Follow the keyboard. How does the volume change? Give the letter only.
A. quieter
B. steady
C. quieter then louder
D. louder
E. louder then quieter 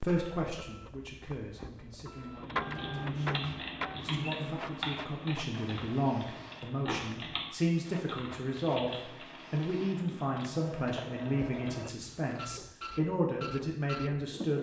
A.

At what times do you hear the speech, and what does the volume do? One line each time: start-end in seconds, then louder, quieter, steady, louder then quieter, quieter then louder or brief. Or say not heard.
0.0-14.5 louder.